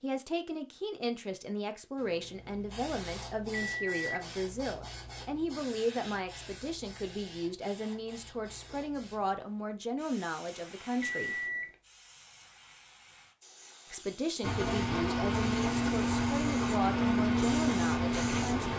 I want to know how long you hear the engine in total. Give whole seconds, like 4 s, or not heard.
4 s.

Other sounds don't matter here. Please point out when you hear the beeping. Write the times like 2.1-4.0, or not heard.
3.5-4.2, 11.0-11.8.